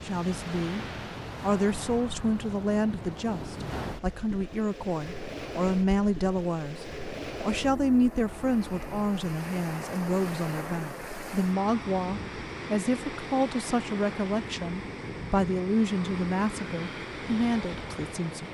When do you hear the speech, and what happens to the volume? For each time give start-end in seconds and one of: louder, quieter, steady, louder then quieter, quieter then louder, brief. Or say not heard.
0.1-18.4 steady.